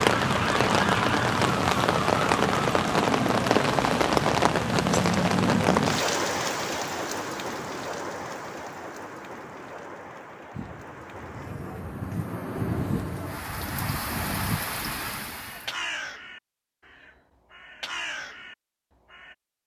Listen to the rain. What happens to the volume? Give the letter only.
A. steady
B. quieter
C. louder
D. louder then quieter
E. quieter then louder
E.